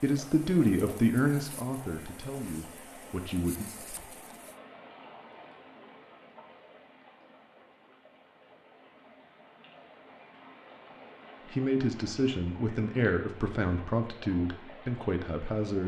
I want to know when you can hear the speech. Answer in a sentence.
The speech can be heard from 0.0 to 3.6 s and from 11.5 to 15.8 s.